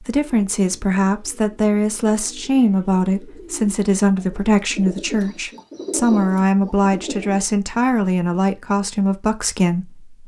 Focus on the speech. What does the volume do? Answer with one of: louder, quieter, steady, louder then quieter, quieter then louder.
steady.